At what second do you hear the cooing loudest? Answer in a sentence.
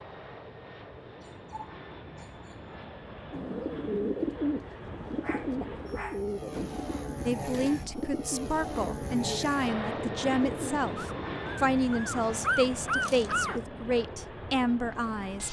The loudest moment of the cooing is at 4 seconds.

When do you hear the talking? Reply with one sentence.
You can hear the talking from 7.2 to 15.4 s.